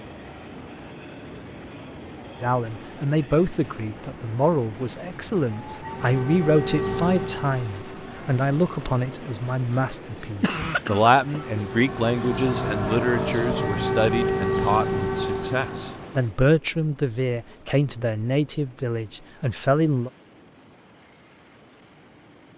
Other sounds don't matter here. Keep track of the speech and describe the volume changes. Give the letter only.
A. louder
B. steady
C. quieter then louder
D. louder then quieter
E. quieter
B.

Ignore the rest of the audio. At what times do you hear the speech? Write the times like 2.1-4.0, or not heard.
2.4-20.1.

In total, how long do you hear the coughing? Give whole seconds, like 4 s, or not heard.
2 s.